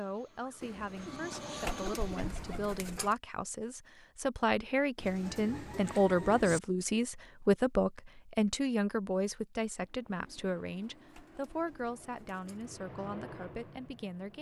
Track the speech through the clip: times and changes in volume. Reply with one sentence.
You can hear the speech from 0.0 to 14.3 s, getting louder then quieter.